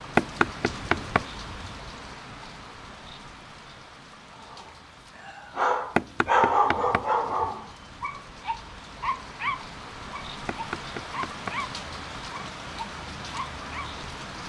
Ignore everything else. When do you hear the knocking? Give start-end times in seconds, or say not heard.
0.1-1.8, 6.0-7.5, 10.4-11.6.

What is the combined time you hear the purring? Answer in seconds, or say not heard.
not heard.